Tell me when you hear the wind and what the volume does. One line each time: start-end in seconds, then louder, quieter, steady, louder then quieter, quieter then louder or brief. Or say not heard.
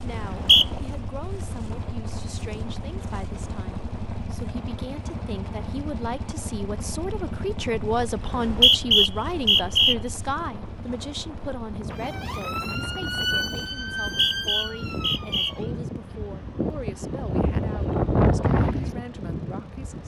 0.0-20.0 louder.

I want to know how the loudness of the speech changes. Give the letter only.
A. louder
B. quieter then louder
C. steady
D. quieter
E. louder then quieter
E.